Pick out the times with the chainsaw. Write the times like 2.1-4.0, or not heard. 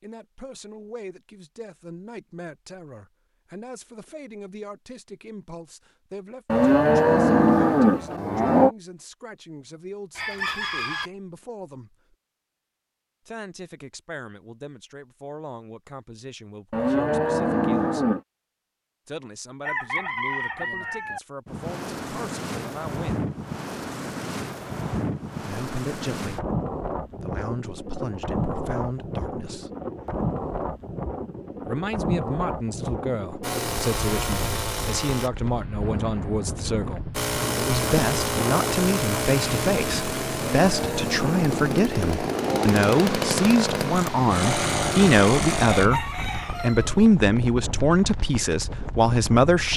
33.4-35.3, 37.1-45.9.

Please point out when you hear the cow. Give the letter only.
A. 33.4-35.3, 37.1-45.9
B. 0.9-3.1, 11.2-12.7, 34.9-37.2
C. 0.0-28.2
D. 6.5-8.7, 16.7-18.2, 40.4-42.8
D.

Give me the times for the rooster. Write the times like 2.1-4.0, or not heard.
10.2-11.1, 19.6-21.2, 45.7-47.0.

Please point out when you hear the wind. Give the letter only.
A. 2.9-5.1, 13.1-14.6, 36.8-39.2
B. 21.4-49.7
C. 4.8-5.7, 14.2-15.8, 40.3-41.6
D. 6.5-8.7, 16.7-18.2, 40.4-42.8
B.